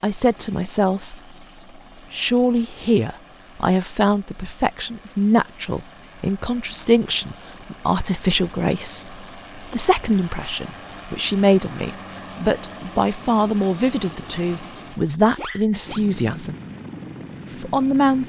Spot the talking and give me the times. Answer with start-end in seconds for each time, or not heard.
0.0-1.1, 2.1-16.6, 17.6-18.2.